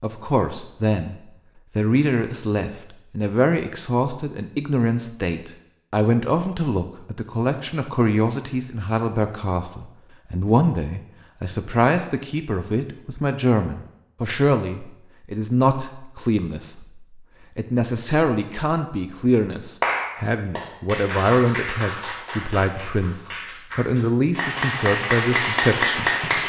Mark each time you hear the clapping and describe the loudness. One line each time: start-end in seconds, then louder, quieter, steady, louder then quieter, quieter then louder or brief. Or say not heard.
19.8-26.4 quieter then louder.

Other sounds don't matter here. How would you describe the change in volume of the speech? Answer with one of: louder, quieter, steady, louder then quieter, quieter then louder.
steady.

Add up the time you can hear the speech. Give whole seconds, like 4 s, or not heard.
26 s.